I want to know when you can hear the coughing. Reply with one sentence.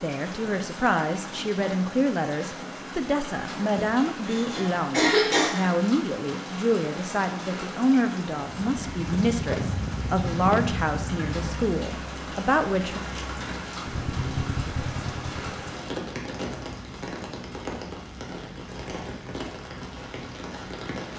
The coughing can be heard from 3.8 to 5.5 s.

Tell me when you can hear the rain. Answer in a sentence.
The rain can be heard from 0.0 to 21.1 s.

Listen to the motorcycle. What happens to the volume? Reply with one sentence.
The volume of the motorcycle goes down, then up.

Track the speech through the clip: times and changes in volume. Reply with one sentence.
The speech can be heard from 0.0 to 13.0 s, at a steady volume.